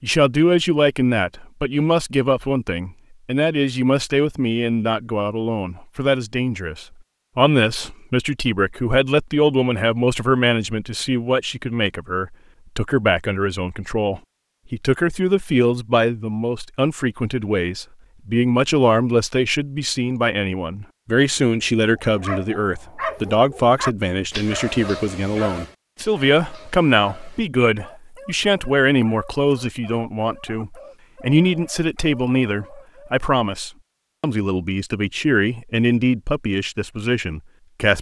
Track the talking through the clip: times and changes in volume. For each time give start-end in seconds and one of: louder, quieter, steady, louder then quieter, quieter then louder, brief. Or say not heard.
0.0-37.9 steady.